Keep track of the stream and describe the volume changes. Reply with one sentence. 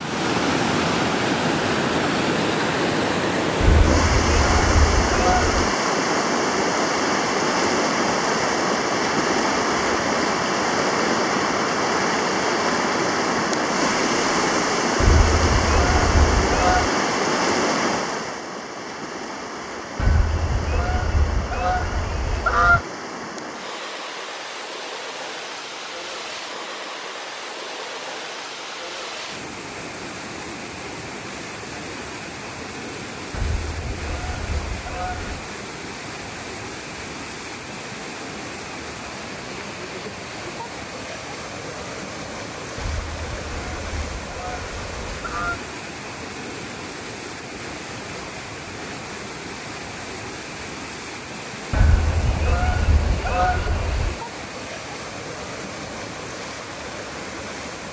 The loudness of the stream goes down.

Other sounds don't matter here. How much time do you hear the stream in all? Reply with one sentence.
You can hear the stream for 58 seconds altogether.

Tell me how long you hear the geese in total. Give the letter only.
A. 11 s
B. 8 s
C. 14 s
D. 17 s
C.